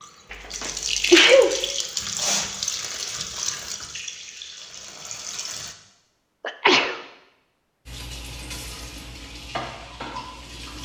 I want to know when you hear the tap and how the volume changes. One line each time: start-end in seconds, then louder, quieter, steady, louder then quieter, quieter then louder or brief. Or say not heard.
0.0-5.8 quieter
7.8-10.8 brief.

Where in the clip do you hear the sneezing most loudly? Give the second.
1 s.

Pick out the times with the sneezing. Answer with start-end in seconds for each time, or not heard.
0.3-1.6, 6.4-7.0.